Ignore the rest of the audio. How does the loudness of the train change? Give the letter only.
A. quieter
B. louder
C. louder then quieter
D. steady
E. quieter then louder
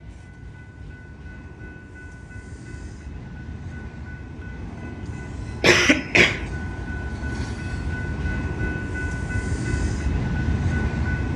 B.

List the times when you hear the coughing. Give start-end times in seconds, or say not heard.
5.6-6.5.